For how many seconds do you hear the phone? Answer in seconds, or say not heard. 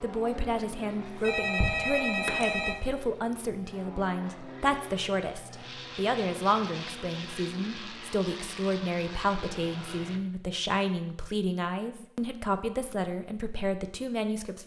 2 s.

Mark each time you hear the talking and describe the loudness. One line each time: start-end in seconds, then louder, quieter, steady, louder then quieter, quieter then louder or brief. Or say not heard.
0.0-14.6 steady.